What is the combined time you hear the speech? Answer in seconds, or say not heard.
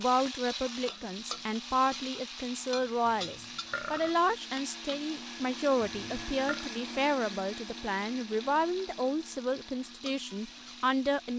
11 s.